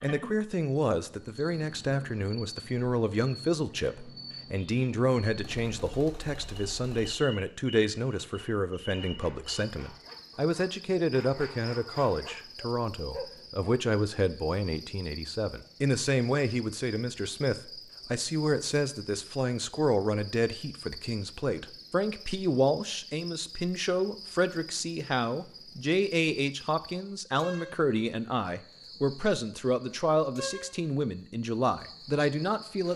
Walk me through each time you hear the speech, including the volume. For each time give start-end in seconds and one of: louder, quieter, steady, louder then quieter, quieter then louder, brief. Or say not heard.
0.0-32.9 steady.